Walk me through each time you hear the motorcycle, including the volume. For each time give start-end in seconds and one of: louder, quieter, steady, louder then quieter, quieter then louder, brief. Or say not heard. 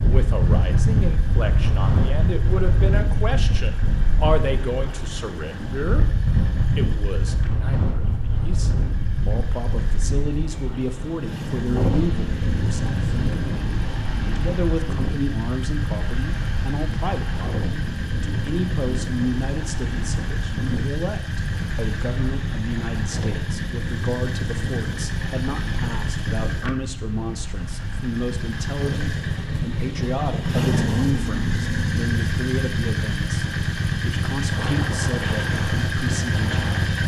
0.0-37.0 louder.